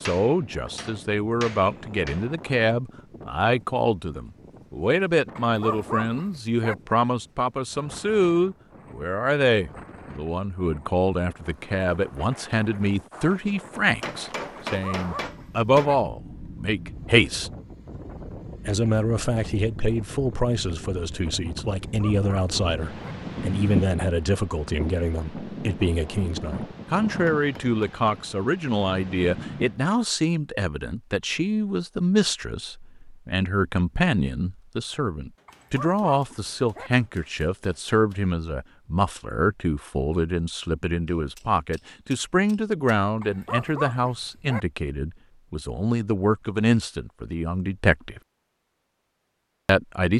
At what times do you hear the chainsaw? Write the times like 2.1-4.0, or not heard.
not heard.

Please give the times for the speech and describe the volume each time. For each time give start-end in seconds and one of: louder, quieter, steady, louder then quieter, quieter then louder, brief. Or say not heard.
0.0-17.5 steady
18.6-48.2 steady
49.6-50.1 brief.